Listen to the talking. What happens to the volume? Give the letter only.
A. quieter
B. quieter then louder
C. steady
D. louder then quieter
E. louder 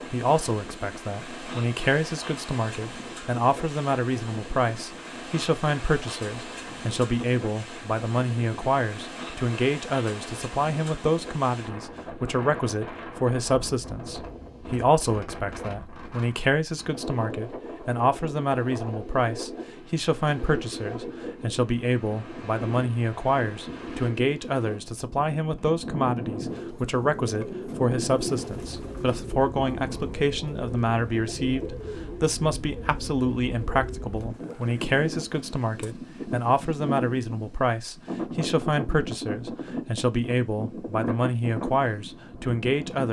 C.